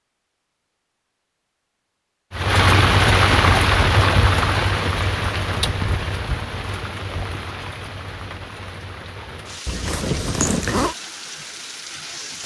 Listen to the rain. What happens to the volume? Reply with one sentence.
The volume of the rain goes down.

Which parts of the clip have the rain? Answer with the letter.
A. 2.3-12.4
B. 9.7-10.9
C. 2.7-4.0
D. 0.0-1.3
A.